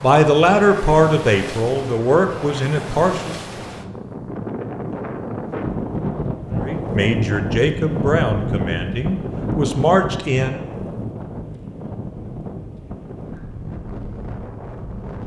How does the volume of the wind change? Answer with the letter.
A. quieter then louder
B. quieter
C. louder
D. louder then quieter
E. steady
D.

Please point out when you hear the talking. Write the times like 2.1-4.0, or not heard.
0.0-3.4, 6.6-10.6.